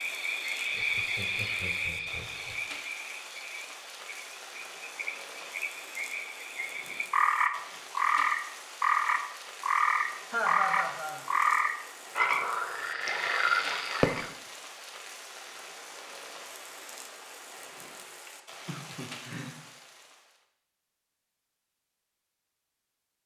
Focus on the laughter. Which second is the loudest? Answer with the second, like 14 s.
11 s.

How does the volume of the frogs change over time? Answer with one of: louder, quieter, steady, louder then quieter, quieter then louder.
quieter then louder.